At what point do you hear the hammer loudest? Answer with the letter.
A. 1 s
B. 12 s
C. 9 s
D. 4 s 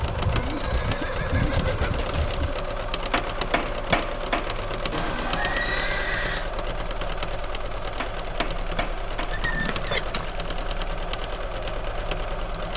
D.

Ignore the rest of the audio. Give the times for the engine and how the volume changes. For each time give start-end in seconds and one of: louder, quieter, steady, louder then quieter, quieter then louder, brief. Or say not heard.
0.0-12.7 steady.